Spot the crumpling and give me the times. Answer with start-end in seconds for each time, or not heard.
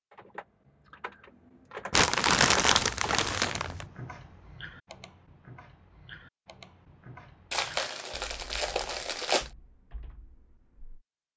1.9-3.9, 7.5-9.5.